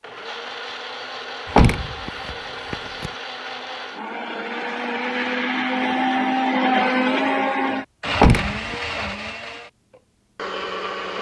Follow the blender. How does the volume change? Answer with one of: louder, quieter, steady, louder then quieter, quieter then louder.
louder then quieter.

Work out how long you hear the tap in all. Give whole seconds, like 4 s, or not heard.
not heard.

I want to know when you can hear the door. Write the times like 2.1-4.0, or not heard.
1.5-3.1, 8.2-8.8.